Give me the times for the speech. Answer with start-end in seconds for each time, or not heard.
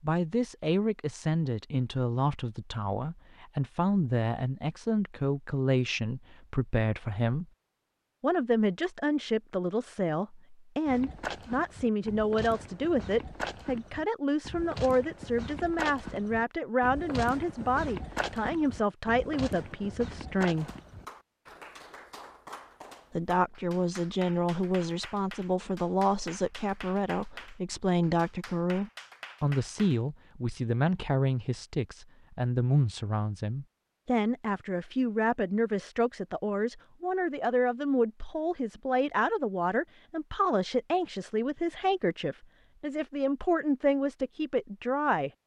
0.0-7.5, 8.2-20.7, 23.1-45.3.